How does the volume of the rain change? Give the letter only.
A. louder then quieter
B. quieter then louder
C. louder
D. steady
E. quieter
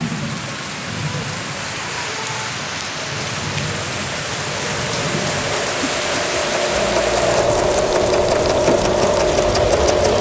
D.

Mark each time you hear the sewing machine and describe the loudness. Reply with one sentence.
The sewing machine can be heard from 3.0 to 10.1 s, getting louder.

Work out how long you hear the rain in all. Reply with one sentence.
The rain can be heard for 10 seconds in total.